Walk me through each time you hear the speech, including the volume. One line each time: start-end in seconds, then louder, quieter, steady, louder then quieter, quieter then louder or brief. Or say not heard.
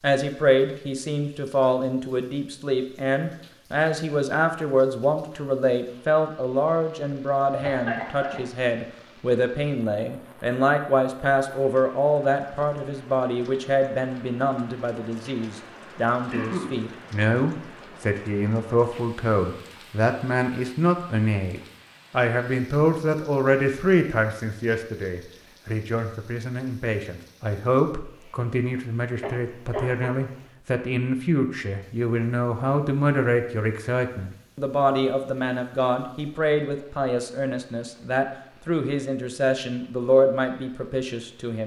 0.0-41.6 steady.